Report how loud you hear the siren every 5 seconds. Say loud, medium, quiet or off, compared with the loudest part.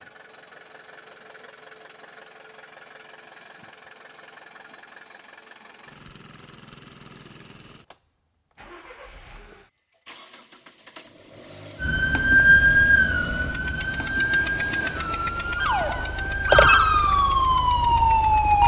off, off, loud, loud.